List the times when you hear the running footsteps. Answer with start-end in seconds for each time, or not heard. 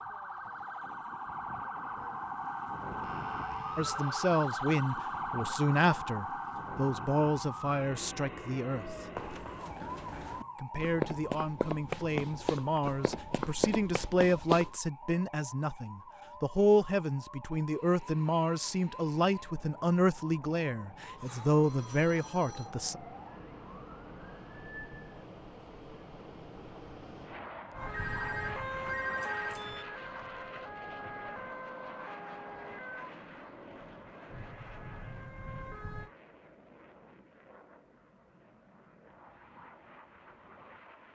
9.1-14.7.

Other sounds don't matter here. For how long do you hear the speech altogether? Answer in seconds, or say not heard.
18 s.